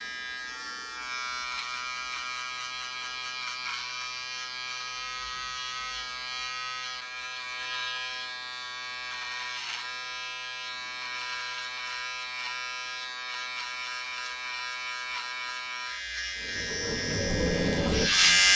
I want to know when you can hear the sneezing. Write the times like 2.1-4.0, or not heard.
not heard.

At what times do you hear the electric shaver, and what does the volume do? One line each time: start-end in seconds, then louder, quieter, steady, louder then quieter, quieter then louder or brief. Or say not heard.
0.0-18.5 steady.